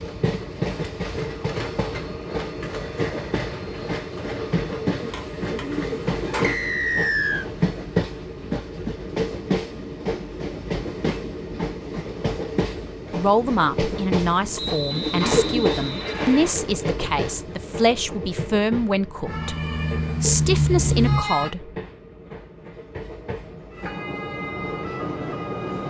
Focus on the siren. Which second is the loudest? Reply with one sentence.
The loudest moment of the siren is at 21 seconds.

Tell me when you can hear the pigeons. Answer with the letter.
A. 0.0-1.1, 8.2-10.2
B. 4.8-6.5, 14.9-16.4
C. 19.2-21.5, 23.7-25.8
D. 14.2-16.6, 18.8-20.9
B.